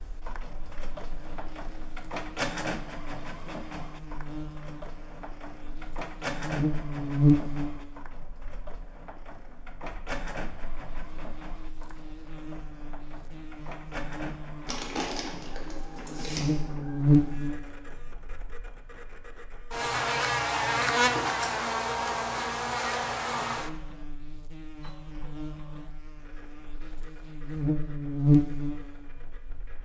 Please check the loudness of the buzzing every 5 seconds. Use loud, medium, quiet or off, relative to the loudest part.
quiet, loud, quiet, loud, loud, loud.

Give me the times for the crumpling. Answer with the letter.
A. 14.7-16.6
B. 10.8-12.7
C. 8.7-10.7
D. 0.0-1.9
A.